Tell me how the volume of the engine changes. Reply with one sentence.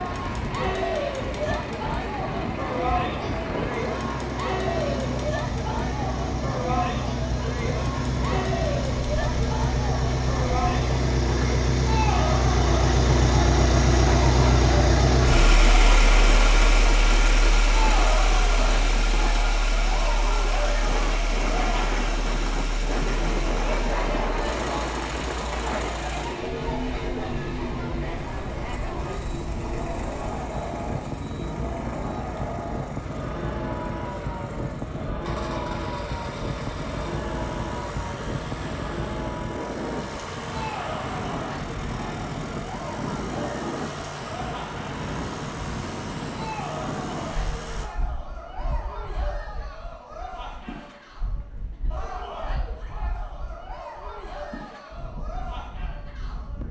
The volume of the engine goes up, then down.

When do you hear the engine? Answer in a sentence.
You can hear the engine from 0.0 to 47.9 s.